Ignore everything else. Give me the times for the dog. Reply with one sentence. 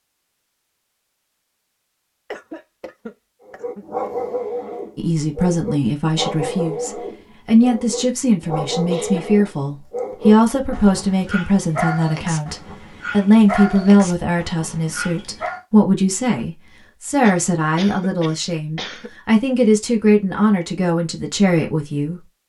You can hear the dog from 3.5 to 15.6 s.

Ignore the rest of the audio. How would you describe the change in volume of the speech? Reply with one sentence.
The volume of the speech stays about the same.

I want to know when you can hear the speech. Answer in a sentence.
The speech can be heard from 5.0 to 22.4 s.